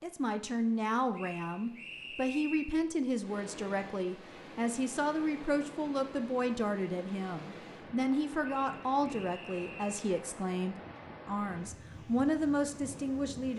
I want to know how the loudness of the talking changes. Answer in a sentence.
The loudness of the talking stays about the same.